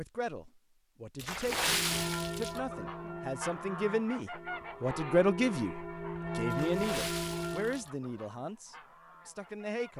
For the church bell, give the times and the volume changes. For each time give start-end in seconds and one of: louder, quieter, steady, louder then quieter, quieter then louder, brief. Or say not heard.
1.5-7.8 quieter then louder.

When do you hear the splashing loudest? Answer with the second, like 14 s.
2 s.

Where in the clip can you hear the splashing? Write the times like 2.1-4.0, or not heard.
1.1-2.6, 6.5-7.9.